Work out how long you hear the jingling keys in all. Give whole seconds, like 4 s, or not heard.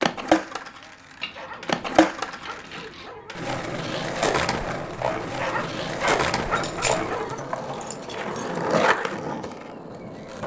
4 s.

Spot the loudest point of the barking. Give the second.
6 s.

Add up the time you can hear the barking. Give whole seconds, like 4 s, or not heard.
4 s.